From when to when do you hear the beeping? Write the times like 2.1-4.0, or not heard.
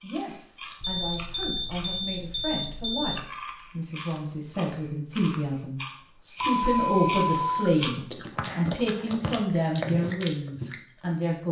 0.8-3.2, 6.3-7.8.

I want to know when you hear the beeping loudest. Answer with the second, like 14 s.
7 s.